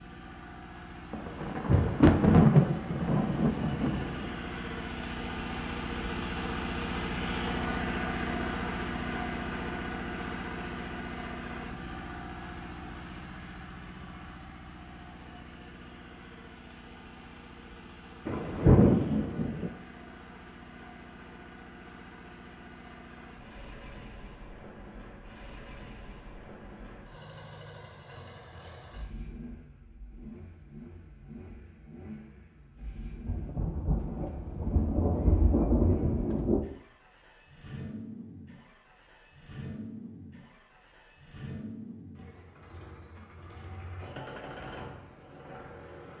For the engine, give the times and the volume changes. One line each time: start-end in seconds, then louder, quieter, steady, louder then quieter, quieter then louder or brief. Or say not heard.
0.0-46.1 quieter.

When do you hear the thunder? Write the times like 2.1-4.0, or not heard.
1.1-4.3, 18.2-19.7, 33.2-36.6.